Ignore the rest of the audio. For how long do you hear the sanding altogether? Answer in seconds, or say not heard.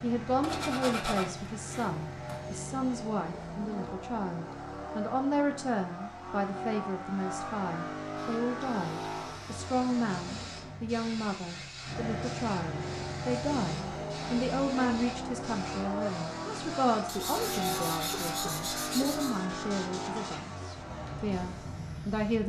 4 s.